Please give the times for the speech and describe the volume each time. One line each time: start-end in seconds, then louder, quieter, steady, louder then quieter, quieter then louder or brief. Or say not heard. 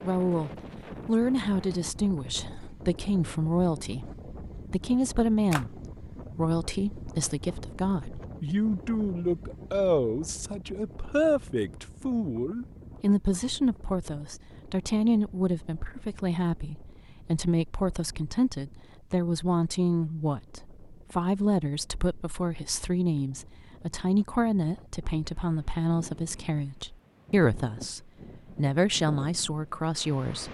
0.0-30.4 steady.